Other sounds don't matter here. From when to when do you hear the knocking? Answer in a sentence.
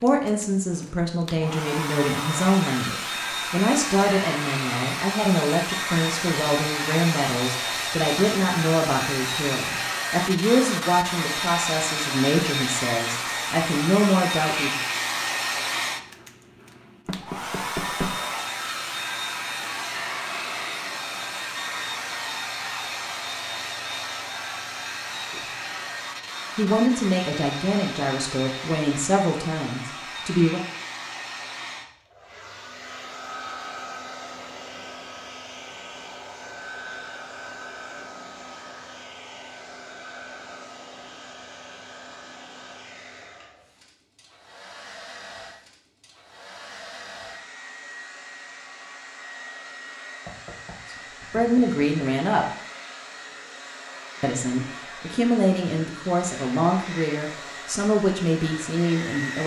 The knocking can be heard from 17.1 to 18.2 s and from 50.2 to 51.9 s.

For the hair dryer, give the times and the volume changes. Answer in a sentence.
The hair dryer can be heard from 0.0 to 59.4 s, getting quieter.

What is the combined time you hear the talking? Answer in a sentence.
The talking can be heard for 25 seconds in total.